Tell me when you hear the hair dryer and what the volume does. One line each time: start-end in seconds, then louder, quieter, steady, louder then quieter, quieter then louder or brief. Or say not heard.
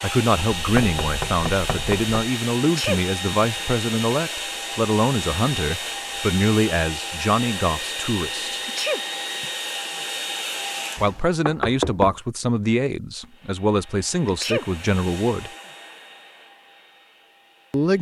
0.0-11.4 steady
13.2-17.9 louder then quieter.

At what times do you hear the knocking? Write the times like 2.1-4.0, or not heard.
0.6-2.1, 10.9-12.2.